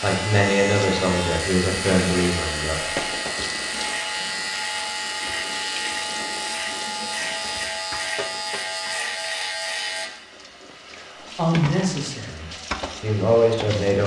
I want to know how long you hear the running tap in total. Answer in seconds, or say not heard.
14 s.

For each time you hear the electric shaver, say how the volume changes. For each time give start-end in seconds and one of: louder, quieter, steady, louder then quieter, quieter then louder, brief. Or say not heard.
0.0-10.1 steady.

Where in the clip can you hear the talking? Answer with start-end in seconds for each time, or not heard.
0.0-3.0, 11.3-14.0.